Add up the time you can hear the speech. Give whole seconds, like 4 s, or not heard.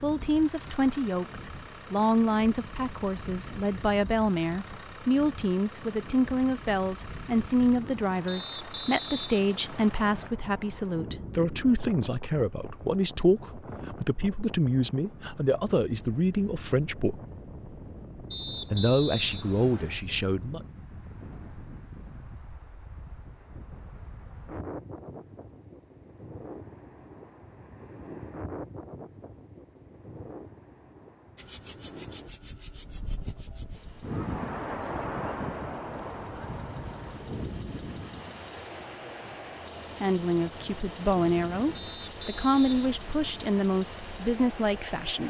24 s.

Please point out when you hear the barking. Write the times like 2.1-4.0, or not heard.
not heard.